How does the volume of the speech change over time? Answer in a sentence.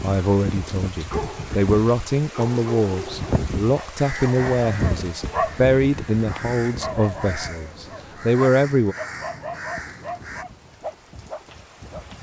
The volume of the speech stays about the same.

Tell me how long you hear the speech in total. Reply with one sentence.
The speech can be heard for 9 seconds in total.